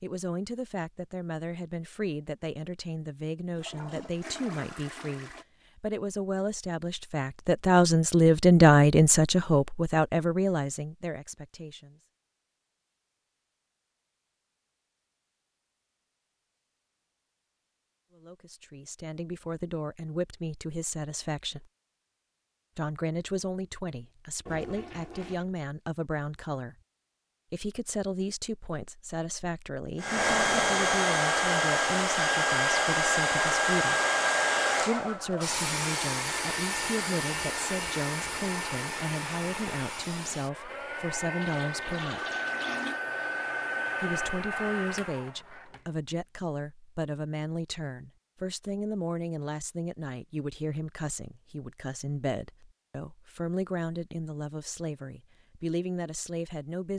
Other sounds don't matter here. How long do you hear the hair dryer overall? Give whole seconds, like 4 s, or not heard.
16 s.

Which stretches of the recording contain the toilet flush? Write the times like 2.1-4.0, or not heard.
3.5-5.5, 24.4-25.4, 41.4-43.0.